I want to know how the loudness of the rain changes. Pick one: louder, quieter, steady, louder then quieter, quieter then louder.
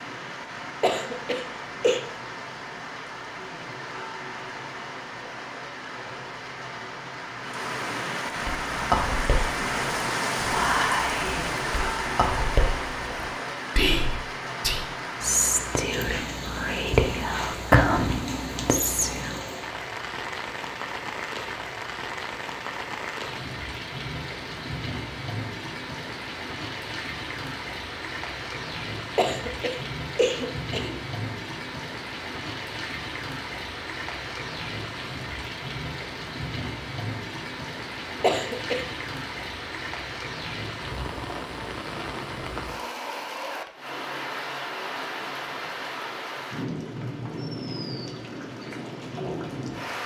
steady.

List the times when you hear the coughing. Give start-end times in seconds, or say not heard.
0.8-2.0, 29.1-31.0, 38.2-38.9.